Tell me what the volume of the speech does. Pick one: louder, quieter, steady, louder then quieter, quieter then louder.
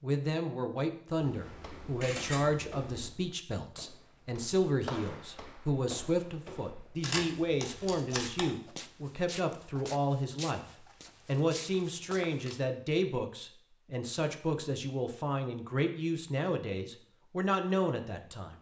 steady.